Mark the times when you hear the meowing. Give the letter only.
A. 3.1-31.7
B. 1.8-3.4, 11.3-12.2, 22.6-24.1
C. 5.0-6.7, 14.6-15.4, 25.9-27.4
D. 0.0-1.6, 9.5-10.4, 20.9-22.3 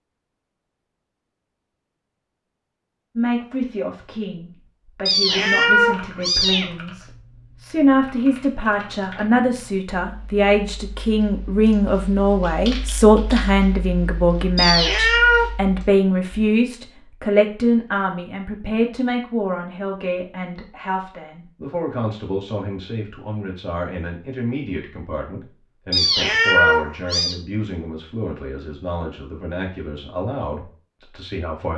C.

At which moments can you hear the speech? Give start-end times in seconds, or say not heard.
3.1-31.7.